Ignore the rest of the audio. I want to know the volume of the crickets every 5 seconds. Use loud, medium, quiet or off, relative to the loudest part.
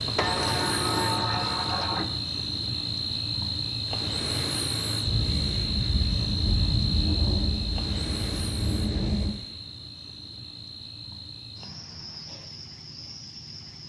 loud, loud, quiet.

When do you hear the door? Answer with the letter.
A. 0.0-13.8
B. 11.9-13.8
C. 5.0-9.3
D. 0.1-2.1
D.